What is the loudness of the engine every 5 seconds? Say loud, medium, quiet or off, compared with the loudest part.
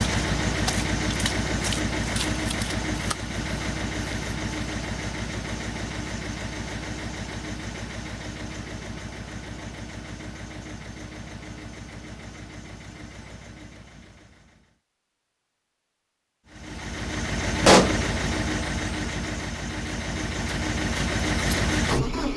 loud, medium, quiet, loud, loud.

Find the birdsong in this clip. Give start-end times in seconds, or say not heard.
not heard.